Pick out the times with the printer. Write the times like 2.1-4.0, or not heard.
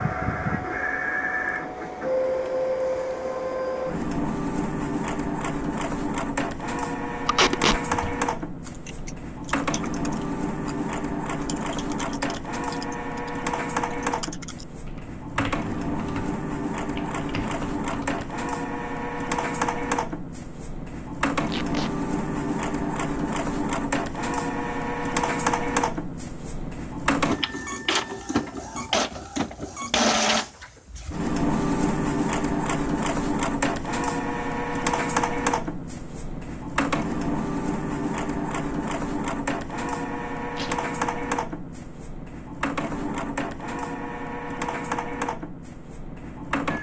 0.0-46.7.